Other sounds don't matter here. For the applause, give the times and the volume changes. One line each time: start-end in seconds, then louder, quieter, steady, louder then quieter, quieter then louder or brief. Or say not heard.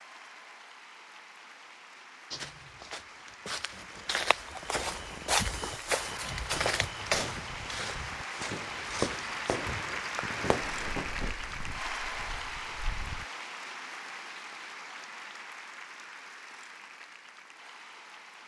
0.0-18.4 louder then quieter.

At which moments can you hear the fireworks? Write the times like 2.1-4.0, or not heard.
4.4-11.3.